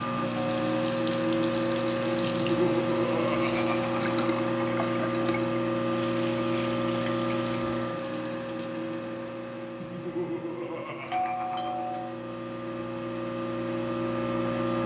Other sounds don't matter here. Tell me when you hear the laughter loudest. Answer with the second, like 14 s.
3 s.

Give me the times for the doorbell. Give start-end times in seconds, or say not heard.
0.3-0.8, 11.1-12.2.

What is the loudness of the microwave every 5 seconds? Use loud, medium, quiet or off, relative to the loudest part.
loud, loud, medium.